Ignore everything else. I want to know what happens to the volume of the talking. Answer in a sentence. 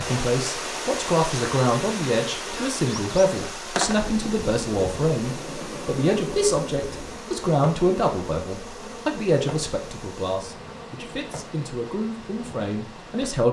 The volume of the talking goes down.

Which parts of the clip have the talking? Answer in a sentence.
You can hear the talking from 0.0 to 13.4 s.